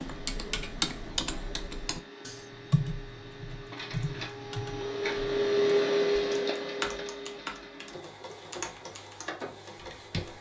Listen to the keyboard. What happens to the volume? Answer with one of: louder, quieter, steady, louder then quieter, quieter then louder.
quieter.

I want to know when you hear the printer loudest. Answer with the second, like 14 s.
6 s.